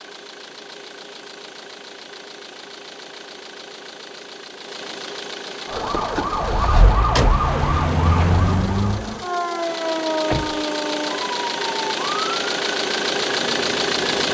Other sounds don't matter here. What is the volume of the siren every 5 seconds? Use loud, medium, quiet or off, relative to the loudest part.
off, loud, medium.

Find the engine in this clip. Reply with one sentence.
The engine can be heard from 0.0 to 14.2 s.